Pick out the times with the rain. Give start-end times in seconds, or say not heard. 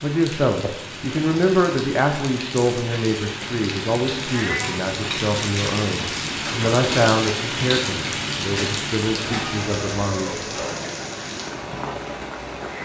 0.0-12.7.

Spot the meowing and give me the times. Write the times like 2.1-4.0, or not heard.
0.6-1.2, 4.3-4.8, 9.1-10.9.